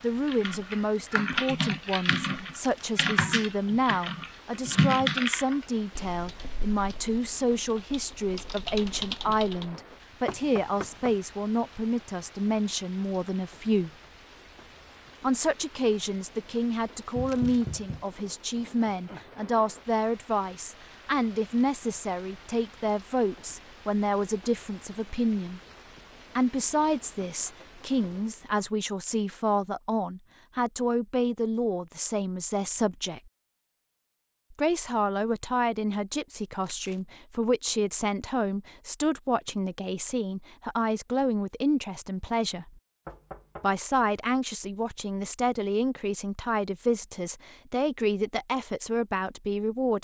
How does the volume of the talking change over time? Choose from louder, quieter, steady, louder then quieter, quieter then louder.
steady.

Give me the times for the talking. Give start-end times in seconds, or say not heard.
0.0-13.9, 15.2-25.6, 26.4-33.2, 34.5-42.7, 43.6-49.9.